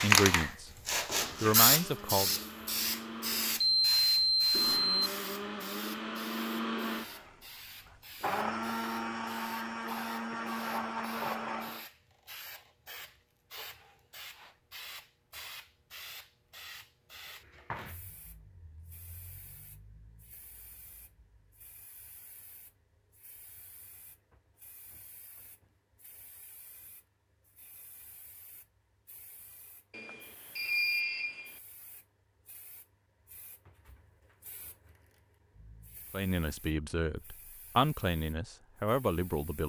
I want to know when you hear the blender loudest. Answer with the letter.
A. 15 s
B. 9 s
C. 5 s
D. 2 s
B.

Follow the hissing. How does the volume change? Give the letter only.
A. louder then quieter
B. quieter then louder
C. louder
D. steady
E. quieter
E.